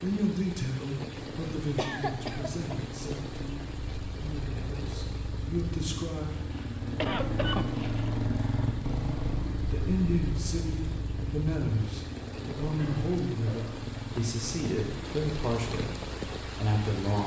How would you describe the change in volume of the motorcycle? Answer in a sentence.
The volume of the motorcycle goes up, then down.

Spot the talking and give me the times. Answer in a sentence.
The talking can be heard from 0.0 to 6.3 s and from 9.6 to 17.2 s.